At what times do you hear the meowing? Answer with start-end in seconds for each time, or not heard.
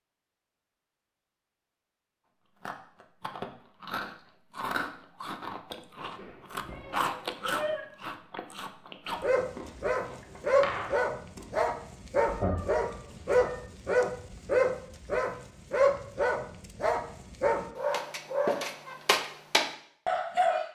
6.2-7.8, 12.2-13.6.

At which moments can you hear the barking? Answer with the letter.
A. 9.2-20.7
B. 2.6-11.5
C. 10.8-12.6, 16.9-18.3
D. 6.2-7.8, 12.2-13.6
A.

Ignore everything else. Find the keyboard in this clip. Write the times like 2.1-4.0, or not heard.
not heard.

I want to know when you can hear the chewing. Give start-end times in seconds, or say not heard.
2.6-11.5.